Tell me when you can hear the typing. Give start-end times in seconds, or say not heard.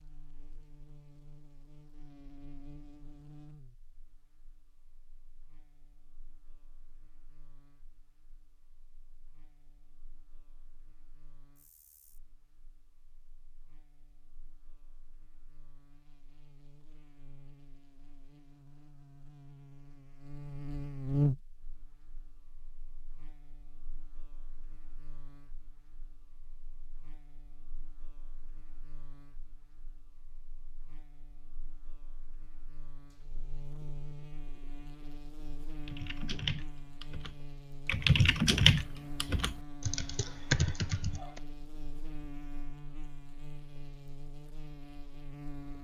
35.9-41.4.